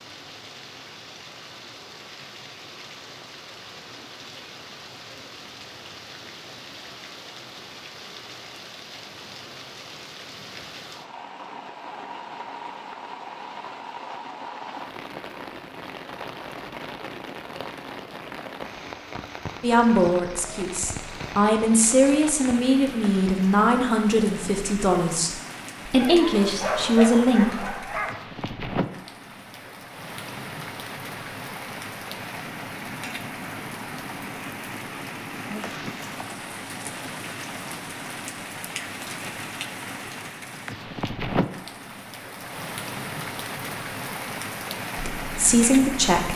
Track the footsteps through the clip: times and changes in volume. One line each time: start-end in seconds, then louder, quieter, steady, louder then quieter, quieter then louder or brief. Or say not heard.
not heard.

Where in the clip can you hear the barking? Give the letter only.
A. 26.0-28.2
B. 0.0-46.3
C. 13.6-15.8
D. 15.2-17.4
A.